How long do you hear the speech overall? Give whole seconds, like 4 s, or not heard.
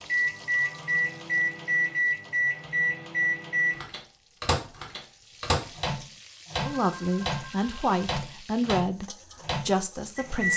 4 s.